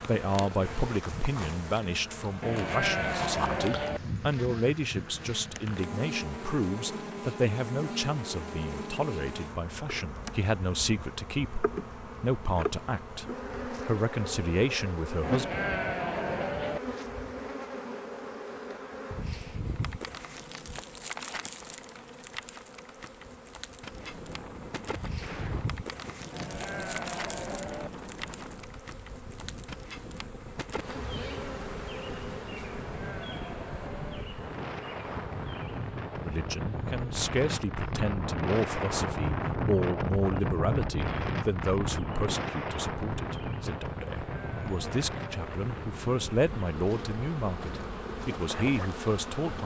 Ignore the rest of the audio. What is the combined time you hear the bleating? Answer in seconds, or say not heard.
8 s.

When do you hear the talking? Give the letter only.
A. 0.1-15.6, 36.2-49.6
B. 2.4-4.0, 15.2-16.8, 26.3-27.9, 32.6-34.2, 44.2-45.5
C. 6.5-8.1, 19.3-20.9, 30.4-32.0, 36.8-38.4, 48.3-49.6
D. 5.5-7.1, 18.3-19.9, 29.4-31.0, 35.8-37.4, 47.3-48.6
A.